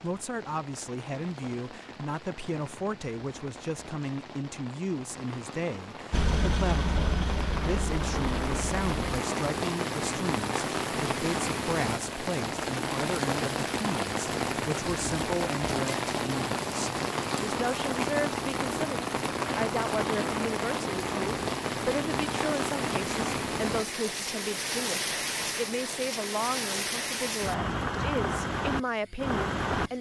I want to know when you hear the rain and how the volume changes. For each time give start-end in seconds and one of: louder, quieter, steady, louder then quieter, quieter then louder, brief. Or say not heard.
0.0-29.9 louder.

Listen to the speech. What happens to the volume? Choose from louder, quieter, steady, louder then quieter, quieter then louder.
steady.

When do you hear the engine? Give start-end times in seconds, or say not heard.
6.1-9.2.